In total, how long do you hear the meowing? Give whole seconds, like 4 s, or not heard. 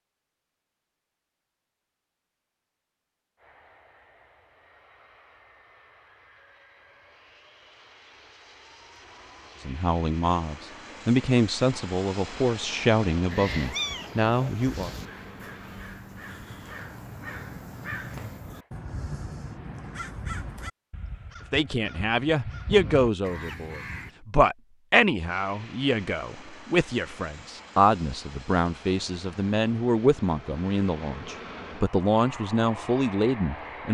2 s.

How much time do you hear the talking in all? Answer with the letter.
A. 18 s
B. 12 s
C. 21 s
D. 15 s
A.